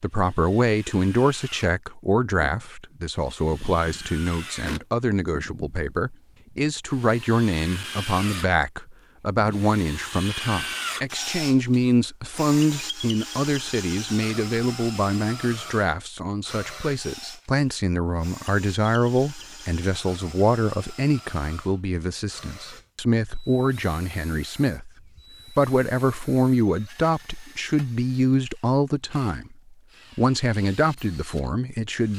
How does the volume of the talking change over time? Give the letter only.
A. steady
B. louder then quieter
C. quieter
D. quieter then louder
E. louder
A.